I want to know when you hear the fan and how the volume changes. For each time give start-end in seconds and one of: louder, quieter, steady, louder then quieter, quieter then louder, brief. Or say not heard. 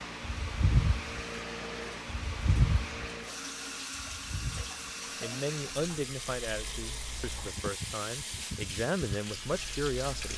0.0-10.3 quieter.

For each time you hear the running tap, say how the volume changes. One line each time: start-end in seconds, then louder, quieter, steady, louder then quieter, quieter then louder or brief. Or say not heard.
0.2-10.3 louder.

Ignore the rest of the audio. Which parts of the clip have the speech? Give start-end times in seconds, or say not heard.
5.2-10.3.